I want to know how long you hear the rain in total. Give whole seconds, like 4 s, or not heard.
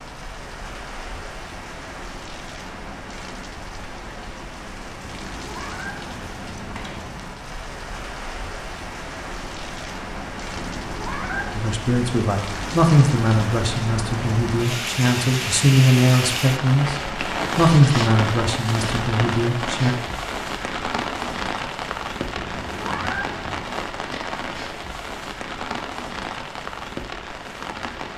28 s.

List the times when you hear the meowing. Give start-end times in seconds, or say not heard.
5.0-7.0, 10.6-11.6, 22.4-23.8.